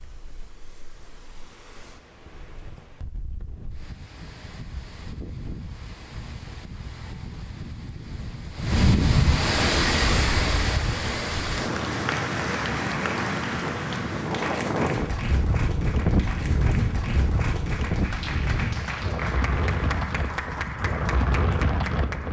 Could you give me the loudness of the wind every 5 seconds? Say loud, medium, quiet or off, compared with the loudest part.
quiet, loud, loud, loud, loud.